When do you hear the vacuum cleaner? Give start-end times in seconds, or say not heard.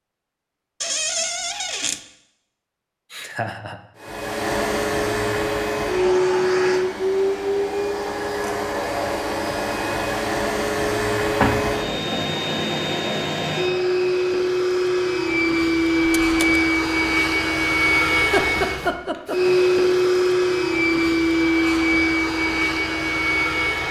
4.0-23.8.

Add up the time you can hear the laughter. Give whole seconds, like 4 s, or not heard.
2 s.